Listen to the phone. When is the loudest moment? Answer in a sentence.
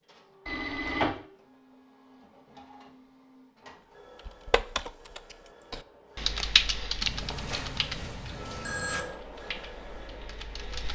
The volume of the phone peaks at 1 second.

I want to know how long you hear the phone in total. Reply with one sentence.
The phone can be heard for 3 seconds in total.